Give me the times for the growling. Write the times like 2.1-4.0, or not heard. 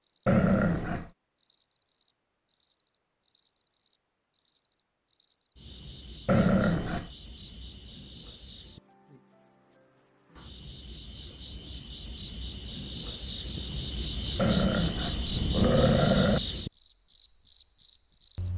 0.2-1.1, 6.2-7.1, 14.3-16.4.